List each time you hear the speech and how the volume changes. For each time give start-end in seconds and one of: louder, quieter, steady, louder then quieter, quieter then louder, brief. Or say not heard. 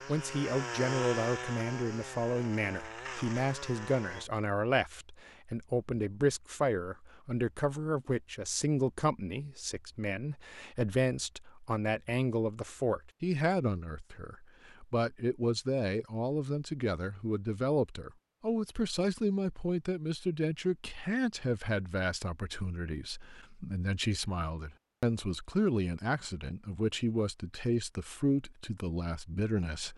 0.1-29.9 steady.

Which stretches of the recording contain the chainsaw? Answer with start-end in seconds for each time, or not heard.
0.0-4.3.